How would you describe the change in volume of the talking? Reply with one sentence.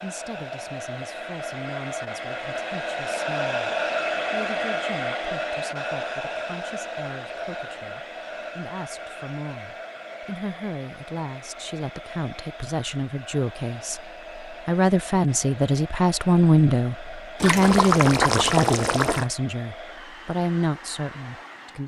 The loudness of the talking goes up.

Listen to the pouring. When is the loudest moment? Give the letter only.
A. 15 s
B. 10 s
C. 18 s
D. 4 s
C.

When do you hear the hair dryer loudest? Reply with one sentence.
The loudest moment of the hair dryer is at 4 seconds.